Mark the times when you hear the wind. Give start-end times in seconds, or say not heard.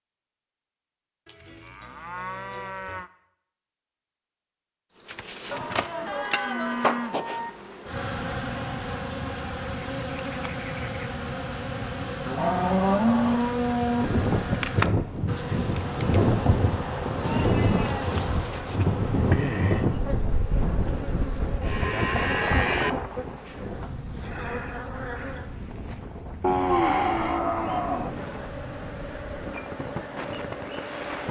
13.9-31.2.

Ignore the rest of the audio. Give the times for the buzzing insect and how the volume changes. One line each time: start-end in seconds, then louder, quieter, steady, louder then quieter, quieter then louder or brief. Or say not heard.
5.0-31.2 quieter.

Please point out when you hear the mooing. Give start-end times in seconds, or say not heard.
1.2-3.1, 5.5-7.5, 12.2-14.1, 17.2-18.8, 21.6-22.9, 26.4-28.1.